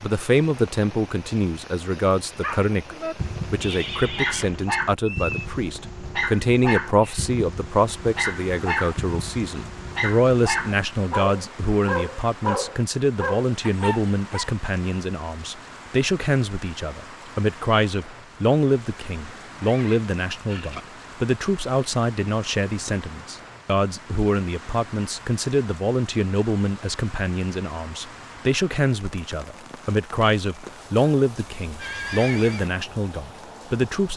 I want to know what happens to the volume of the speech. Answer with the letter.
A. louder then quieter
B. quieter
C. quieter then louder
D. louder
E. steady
E.